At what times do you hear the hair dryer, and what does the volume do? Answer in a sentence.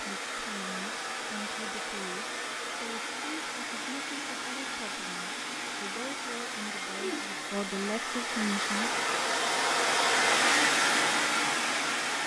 The hair dryer can be heard from 0.0 to 12.2 s, getting louder.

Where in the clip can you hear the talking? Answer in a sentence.
You can hear the talking from 0.0 to 9.3 s.